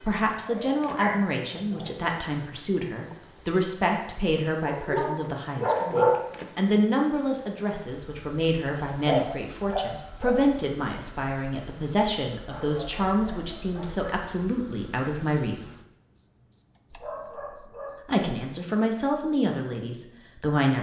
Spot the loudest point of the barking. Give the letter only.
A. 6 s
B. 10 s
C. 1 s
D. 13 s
A.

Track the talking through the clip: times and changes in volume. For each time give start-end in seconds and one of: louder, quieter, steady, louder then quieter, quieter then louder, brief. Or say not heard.
0.0-15.6 steady
18.1-20.7 brief.